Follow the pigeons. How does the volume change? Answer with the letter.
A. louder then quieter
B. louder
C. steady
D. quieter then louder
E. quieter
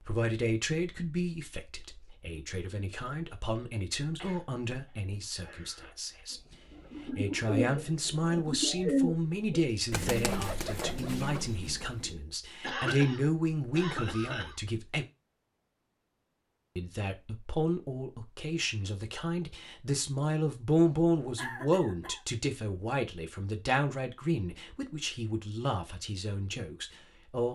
E.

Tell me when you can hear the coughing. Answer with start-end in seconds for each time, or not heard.
4.2-5.9, 12.6-14.6, 21.4-22.2.